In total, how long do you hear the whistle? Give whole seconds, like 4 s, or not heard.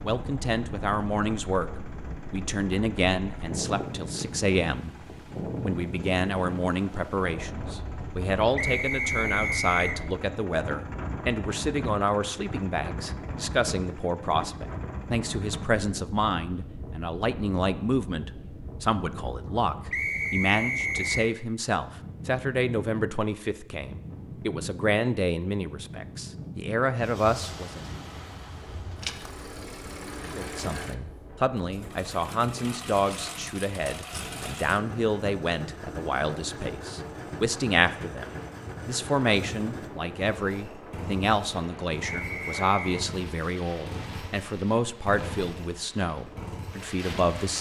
4 s.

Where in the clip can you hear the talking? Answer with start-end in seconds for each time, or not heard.
0.0-1.7, 2.3-5.0, 5.6-27.9, 30.2-47.5.